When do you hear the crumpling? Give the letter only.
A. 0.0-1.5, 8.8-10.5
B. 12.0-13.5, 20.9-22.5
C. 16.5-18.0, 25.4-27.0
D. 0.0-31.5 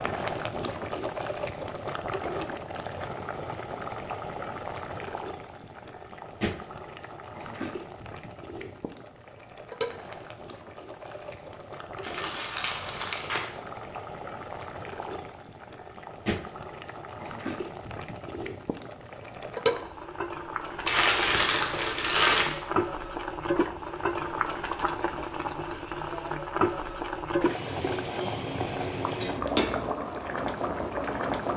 B.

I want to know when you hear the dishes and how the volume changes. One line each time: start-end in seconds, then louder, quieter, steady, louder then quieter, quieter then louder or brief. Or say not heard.
not heard.